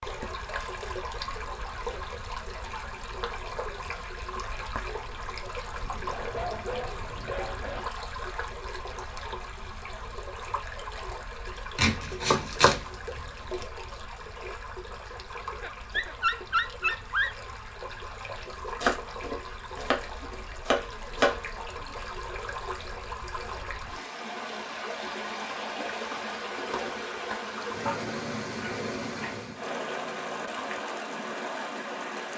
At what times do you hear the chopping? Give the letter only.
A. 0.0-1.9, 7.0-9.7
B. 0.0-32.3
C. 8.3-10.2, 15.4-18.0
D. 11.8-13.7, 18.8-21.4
D.